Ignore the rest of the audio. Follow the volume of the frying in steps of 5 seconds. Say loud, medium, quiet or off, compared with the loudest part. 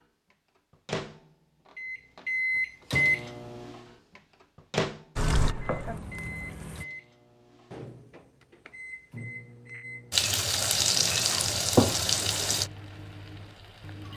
off, medium, loud.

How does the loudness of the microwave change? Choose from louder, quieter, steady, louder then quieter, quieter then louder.
quieter.